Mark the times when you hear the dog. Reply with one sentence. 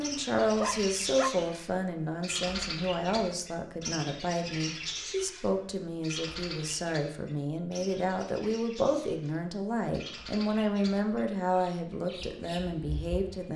The dog can be heard from 0.4 to 1.3 s.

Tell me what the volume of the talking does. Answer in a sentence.
The loudness of the talking stays about the same.